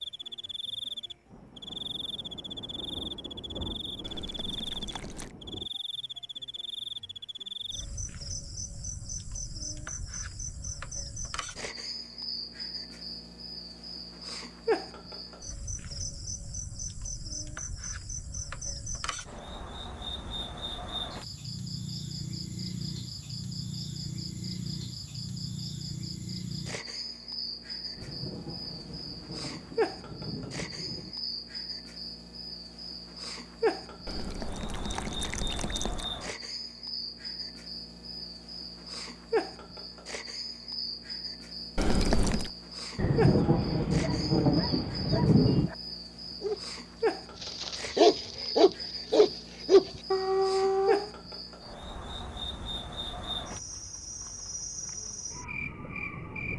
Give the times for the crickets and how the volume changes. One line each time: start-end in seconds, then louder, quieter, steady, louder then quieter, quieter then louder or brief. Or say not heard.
0.0-56.5 steady.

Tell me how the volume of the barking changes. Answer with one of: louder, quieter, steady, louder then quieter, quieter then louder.
louder.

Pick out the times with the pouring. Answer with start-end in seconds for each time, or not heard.
4.0-5.3, 34.0-36.1, 41.8-42.5.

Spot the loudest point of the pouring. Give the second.
42 s.